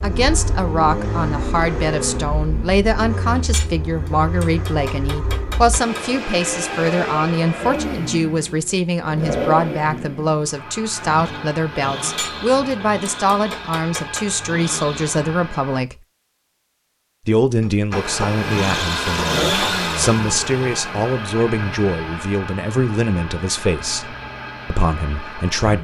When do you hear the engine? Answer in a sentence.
The engine can be heard from 0.0 to 15.8 s and from 17.9 to 25.8 s.